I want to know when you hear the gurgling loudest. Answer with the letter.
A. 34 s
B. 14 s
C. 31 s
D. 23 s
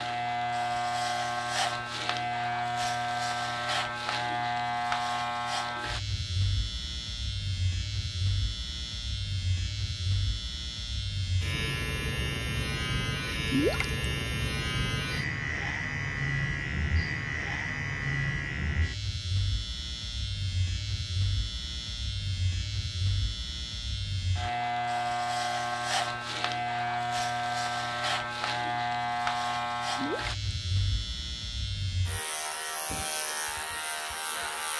B.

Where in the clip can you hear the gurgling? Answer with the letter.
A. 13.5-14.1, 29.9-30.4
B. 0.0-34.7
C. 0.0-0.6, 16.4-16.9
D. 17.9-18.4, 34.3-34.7
A.